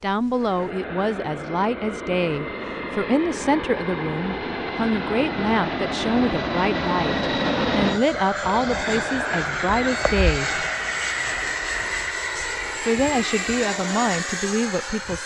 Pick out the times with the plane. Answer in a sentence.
The plane can be heard from 0.0 to 15.2 s.